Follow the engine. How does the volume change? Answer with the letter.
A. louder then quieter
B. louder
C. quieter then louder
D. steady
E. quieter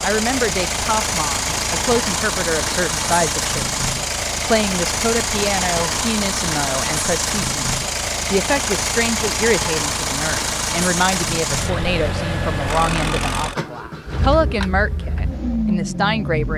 D.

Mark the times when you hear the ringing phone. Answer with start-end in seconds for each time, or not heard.
not heard.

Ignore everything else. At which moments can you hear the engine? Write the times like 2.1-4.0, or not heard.
0.0-16.5.